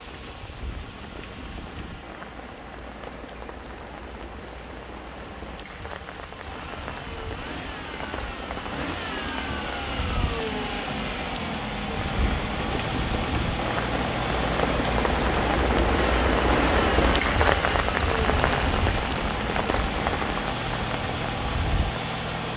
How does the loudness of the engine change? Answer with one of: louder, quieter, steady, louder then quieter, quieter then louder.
louder.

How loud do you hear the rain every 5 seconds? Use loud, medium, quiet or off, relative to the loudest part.
quiet, quiet, medium, loud, medium.